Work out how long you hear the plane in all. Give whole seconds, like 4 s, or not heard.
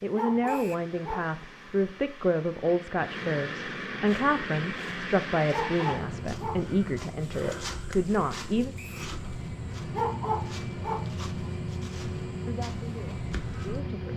14 s.